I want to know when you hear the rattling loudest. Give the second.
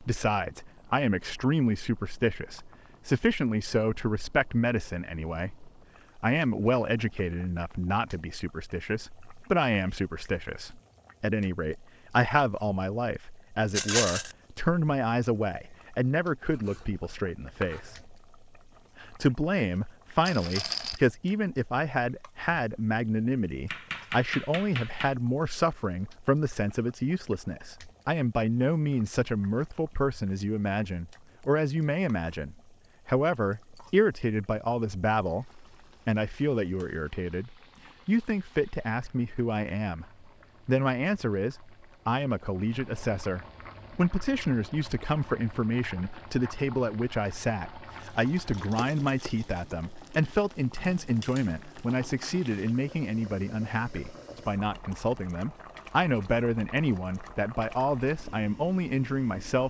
14 s.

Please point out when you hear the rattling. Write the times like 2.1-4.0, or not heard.
13.7-14.3, 20.2-21.0, 48.0-49.8.